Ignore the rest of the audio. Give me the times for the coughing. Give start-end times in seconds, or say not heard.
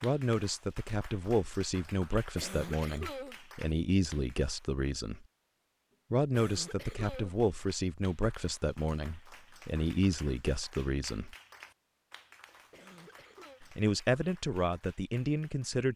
2.4-3.4, 6.3-7.3, 12.7-13.6.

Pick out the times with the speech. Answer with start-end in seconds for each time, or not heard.
0.0-5.2, 6.1-11.3, 13.6-15.9.